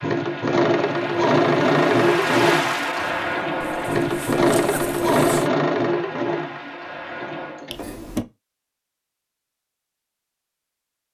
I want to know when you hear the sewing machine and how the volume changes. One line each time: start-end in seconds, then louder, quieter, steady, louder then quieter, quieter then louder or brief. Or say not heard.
0.0-8.2 quieter.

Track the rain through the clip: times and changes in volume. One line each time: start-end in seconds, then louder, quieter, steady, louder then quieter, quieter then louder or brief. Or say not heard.
0.0-7.7 louder then quieter.